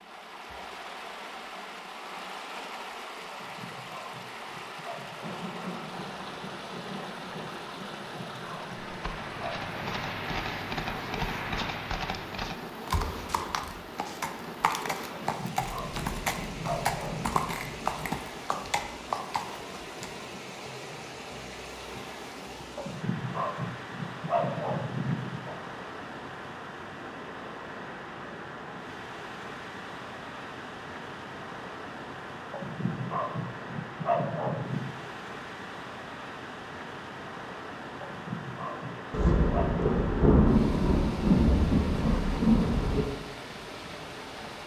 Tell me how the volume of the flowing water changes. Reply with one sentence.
The loudness of the flowing water stays about the same.